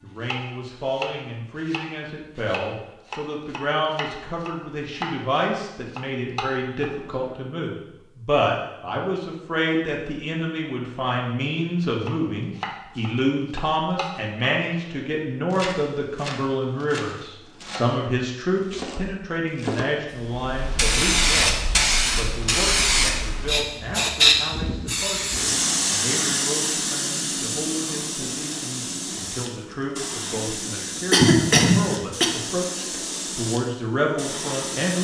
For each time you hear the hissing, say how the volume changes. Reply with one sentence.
The hissing can be heard from 20.1 to 34.9 s, getting quieter.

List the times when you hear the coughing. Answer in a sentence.
The coughing can be heard from 30.8 to 32.3 s.